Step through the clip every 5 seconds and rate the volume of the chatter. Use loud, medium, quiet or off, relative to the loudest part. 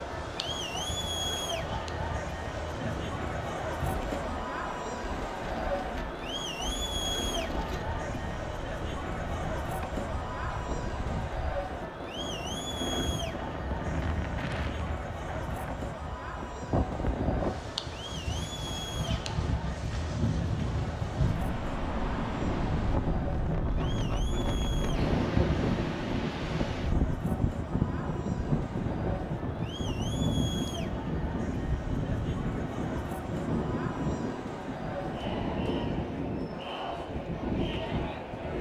loud, loud, loud, medium, medium, medium, medium, loud.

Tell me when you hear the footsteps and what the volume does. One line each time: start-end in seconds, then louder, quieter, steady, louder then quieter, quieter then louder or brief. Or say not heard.
not heard.